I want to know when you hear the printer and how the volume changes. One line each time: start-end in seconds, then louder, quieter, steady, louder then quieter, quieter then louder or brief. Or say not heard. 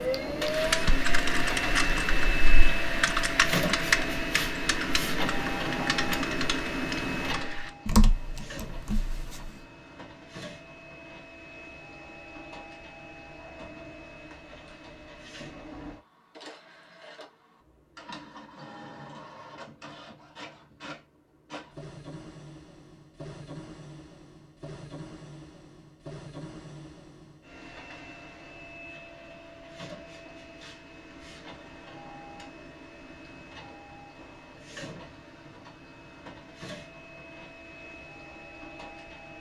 0.0-39.3 quieter.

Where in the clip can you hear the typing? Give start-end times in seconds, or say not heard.
0.5-9.5.